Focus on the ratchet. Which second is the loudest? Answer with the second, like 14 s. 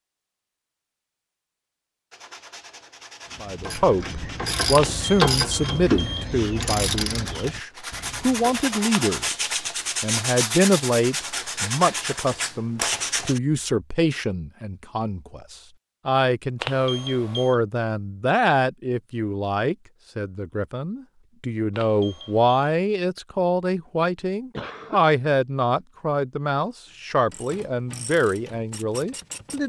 5 s.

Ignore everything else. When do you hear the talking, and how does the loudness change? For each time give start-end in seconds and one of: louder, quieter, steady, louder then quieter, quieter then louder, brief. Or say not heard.
3.4-29.6 steady.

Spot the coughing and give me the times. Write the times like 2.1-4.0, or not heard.
24.5-25.0.